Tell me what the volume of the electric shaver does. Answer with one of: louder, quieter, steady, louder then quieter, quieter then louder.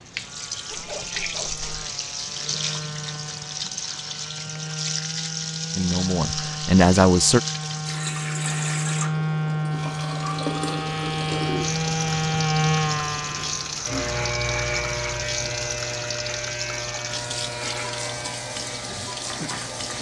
louder then quieter.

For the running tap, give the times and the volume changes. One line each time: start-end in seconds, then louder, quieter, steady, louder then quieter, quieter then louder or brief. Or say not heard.
0.0-19.9 steady.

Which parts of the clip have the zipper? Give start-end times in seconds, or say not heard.
0.7-1.9.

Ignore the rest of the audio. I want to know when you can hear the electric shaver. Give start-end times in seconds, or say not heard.
0.0-19.9.